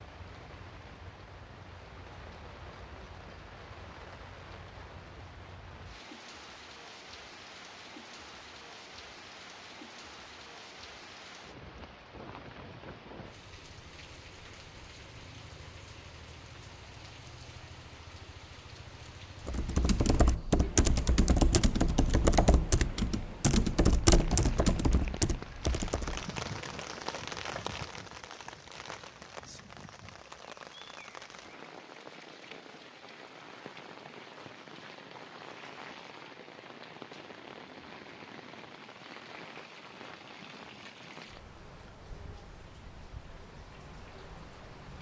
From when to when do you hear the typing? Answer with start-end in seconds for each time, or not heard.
19.4-26.3.